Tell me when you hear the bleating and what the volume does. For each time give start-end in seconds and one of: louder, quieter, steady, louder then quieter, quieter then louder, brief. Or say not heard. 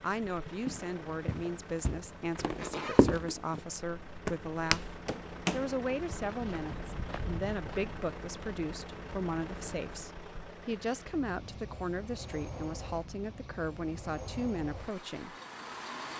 not heard.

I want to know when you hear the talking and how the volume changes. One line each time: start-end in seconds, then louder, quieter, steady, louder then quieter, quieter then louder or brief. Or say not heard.
0.0-4.9 steady
5.5-15.3 steady.